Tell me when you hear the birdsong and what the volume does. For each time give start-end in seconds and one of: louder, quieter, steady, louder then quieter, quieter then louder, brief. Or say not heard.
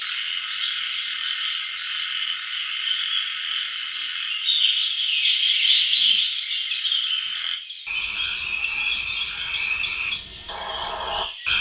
0.0-11.5 louder then quieter.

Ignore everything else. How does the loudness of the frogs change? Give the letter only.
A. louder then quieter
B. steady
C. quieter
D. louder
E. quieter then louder
E.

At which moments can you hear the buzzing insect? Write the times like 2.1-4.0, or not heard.
not heard.